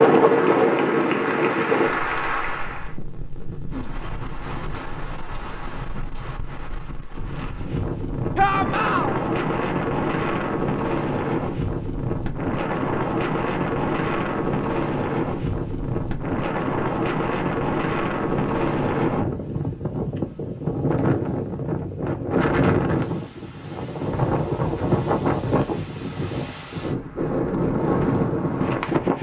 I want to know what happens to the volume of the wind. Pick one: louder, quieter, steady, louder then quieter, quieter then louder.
steady.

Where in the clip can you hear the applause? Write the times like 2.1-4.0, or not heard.
0.0-3.0.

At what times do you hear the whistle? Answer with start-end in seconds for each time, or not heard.
not heard.